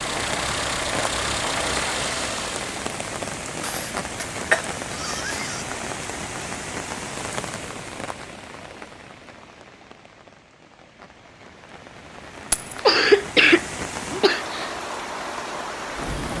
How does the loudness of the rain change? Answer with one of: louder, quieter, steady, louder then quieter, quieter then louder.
quieter then louder.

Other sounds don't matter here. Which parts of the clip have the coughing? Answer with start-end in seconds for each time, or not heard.
3.6-5.7, 12.8-14.7.